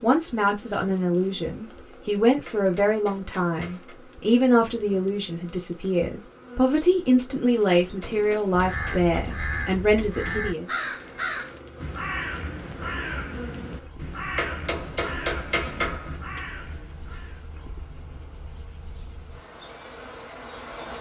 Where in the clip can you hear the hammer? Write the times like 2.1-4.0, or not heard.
2.5-4.0, 7.8-10.4, 14.3-16.4.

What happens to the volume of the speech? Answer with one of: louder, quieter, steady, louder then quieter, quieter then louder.
steady.